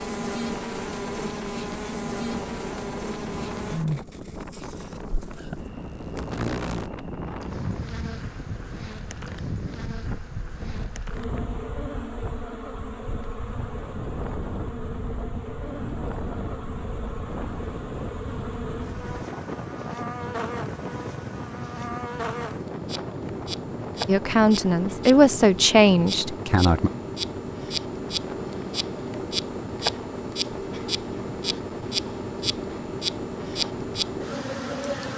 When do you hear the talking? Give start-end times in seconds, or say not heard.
24.1-26.9.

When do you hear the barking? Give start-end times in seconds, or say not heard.
not heard.